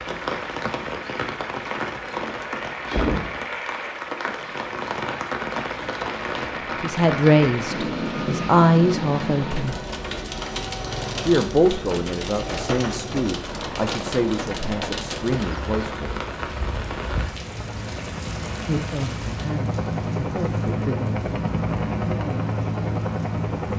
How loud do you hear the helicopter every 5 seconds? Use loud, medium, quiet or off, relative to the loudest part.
medium, medium, medium, medium, loud.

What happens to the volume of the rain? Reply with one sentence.
The volume of the rain goes down.